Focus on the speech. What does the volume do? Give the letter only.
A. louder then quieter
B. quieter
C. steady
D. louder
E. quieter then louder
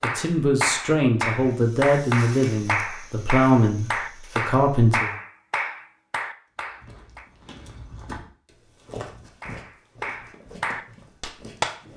C.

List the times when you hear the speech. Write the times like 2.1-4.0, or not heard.
0.0-5.1.